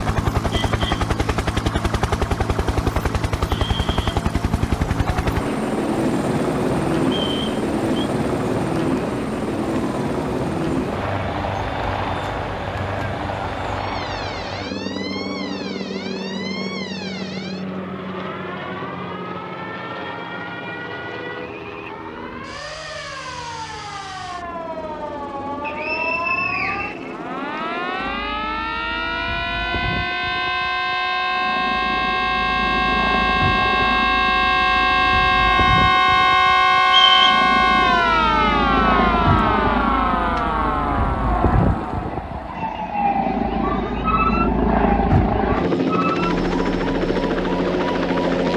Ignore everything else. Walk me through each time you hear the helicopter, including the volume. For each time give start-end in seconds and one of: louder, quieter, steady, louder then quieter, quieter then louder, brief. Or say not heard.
0.0-48.5 quieter then louder.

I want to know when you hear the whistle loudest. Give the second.
37 s.